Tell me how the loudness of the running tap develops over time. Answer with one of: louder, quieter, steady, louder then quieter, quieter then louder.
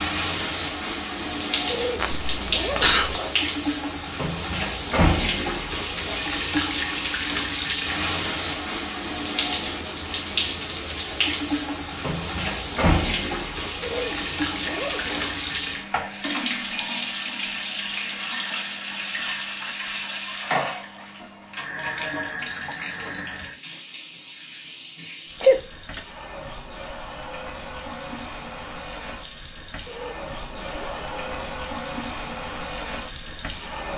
quieter.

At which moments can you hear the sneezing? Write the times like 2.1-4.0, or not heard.
1.9-3.2, 25.4-26.0.